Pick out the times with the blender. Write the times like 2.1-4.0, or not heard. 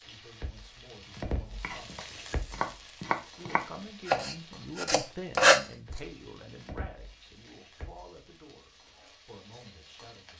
not heard.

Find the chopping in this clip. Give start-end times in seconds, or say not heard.
1.1-5.6.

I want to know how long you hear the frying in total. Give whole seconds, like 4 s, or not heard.
10 s.